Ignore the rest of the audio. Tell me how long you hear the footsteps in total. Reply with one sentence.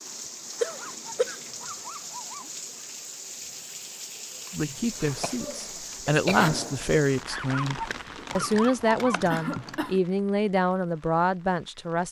The footsteps can't be heard in this clip.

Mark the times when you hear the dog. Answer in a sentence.
The dog can be heard from 0.6 to 2.5 s and from 7.3 to 9.2 s.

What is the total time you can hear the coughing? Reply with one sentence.
You can hear the coughing for 3 seconds altogether.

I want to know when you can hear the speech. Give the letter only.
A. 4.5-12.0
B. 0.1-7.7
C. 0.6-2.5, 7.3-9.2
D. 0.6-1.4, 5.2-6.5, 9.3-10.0
A.